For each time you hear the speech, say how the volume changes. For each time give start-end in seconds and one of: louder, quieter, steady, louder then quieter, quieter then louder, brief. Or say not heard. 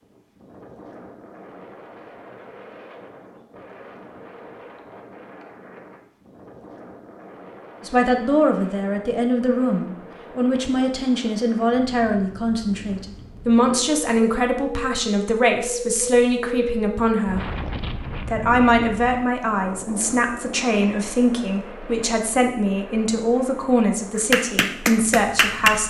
7.8-17.5 steady
18.2-25.8 steady.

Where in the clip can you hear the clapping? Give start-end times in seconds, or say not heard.
24.1-25.7.